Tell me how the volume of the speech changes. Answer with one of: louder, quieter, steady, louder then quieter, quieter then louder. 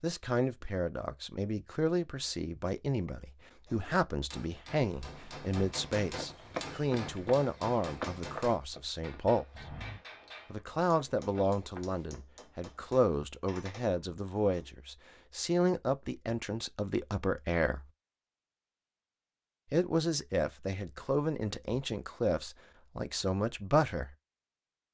steady.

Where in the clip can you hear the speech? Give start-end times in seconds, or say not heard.
0.0-9.8, 10.5-17.9, 19.7-24.1.